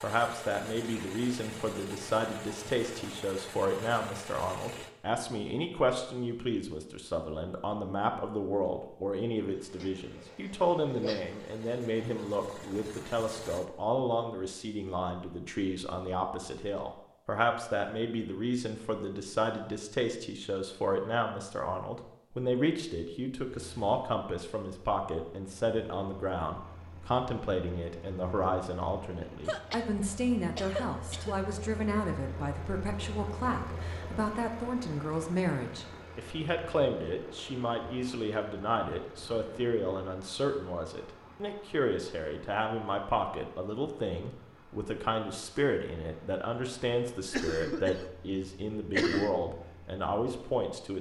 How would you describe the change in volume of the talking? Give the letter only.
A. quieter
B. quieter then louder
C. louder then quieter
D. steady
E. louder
D.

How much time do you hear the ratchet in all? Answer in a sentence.
The ratchet can't be heard in this clip.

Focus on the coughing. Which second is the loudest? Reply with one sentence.
The volume of the coughing peaks at 49 seconds.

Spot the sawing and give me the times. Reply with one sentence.
The sawing can't be heard in this clip.